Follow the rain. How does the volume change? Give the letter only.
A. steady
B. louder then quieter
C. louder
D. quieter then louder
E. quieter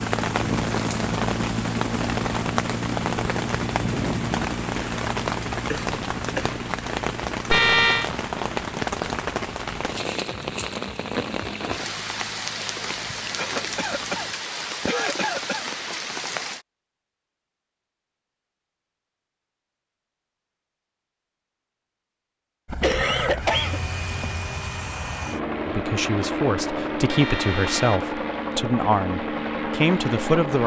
A.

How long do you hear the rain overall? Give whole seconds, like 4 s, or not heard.
17 s.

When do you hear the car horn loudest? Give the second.
8 s.